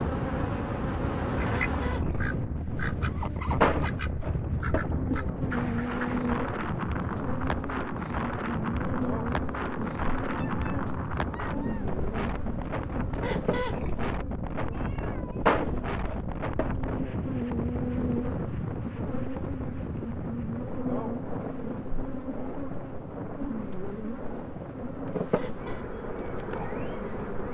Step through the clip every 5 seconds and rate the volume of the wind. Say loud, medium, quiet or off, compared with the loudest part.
loud, loud, loud, loud, medium, medium.